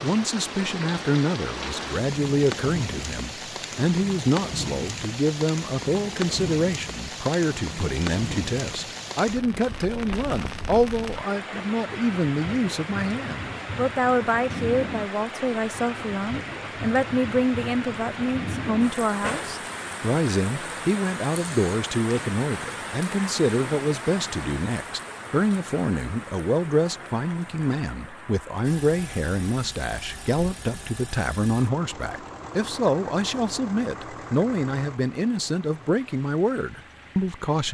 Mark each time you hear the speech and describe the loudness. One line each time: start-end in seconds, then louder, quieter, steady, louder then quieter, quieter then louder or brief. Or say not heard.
0.0-37.6 steady.